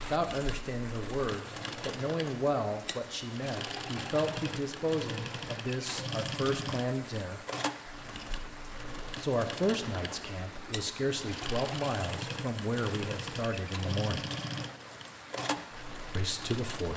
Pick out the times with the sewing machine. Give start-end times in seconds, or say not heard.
0.0-16.9.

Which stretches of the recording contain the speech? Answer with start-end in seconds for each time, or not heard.
0.0-7.4, 9.2-14.3, 16.1-16.9.